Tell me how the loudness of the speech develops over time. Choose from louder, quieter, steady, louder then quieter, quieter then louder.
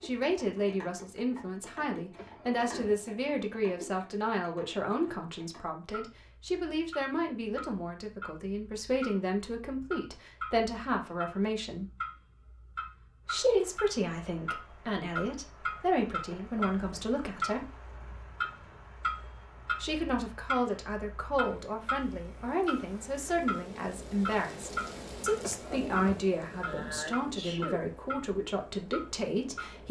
steady.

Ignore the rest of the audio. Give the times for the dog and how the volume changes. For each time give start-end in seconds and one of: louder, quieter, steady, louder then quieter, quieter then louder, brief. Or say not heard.
not heard.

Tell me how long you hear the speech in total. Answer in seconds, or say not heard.
26 s.